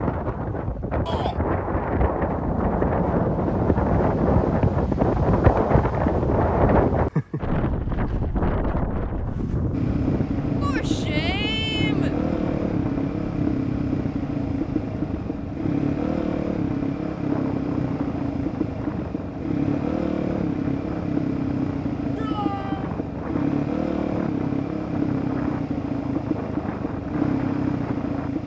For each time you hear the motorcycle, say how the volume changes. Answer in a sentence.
The motorcycle can be heard briefly from 2.2 to 5.1 s; and from 9.7 to 28.4 s, at a steady volume.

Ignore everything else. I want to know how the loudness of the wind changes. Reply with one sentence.
The loudness of the wind goes down.